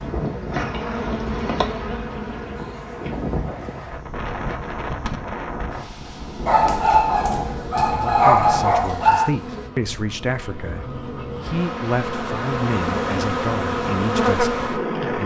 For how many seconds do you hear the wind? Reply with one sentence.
You can hear the wind for 10 seconds altogether.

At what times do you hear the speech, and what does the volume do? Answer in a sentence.
You can hear the speech from 7.8 to 15.2 s, at a steady volume.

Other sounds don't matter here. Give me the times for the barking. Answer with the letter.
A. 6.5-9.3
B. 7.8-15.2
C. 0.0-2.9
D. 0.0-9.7
A.